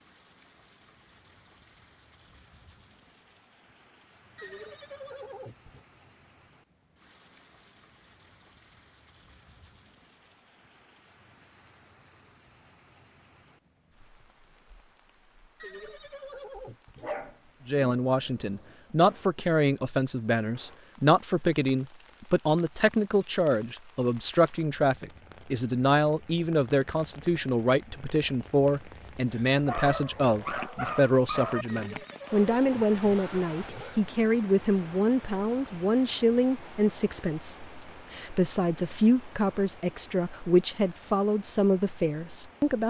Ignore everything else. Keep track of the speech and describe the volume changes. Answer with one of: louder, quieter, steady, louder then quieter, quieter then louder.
steady.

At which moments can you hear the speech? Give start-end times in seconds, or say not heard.
17.6-42.8.